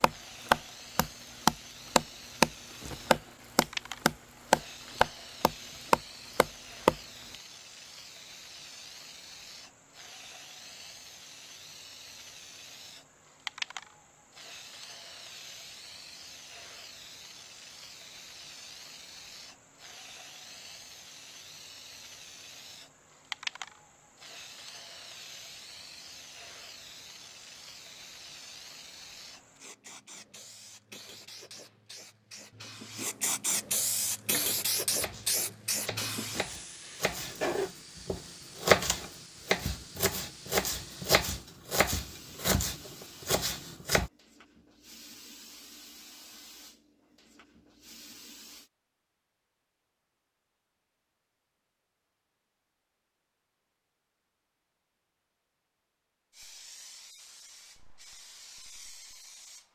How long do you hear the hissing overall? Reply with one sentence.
You can hear the hissing for 52 seconds altogether.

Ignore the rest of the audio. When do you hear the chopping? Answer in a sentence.
The chopping can be heard from 0.0 to 7.3 s and from 34.3 to 44.1 s.